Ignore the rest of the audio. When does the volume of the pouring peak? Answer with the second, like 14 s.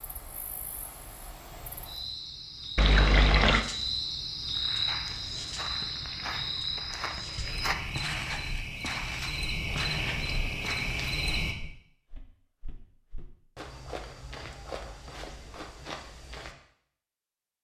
3 s.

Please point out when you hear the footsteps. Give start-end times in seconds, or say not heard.
4.5-16.6.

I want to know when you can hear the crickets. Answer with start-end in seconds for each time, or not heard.
0.0-11.6.